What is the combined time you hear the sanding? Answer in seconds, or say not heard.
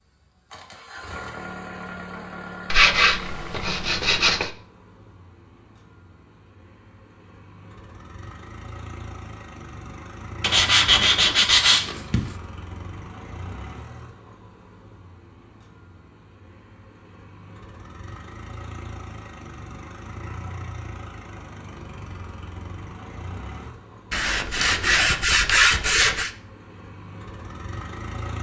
6 s.